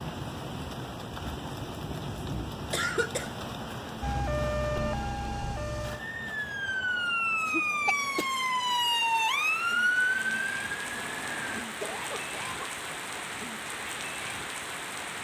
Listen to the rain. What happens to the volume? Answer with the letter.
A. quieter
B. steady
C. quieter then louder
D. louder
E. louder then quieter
C.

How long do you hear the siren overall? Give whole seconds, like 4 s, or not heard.
8 s.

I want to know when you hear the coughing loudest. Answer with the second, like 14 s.
3 s.